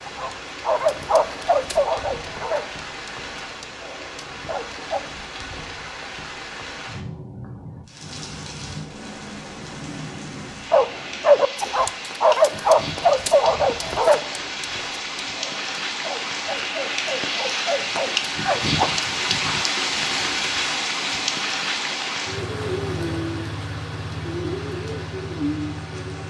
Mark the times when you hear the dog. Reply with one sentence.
The dog can be heard from 0.0 to 5.0 s and from 10.7 to 18.9 s.